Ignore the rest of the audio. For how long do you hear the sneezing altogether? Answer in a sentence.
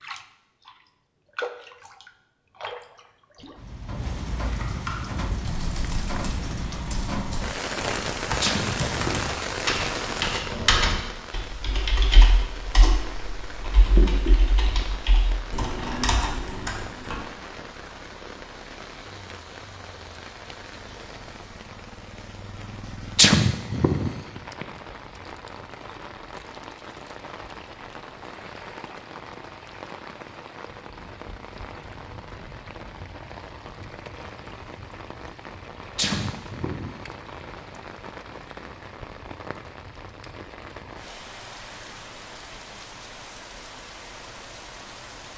You can hear the sneezing for 4 seconds altogether.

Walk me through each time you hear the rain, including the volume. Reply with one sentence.
The rain can be heard from 0.0 to 45.3 s, getting quieter.